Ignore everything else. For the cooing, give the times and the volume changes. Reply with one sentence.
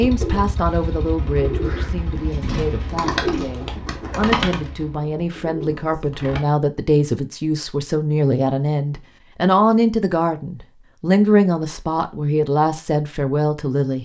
The cooing can be heard from 0.0 to 6.5 s, getting louder then quieter.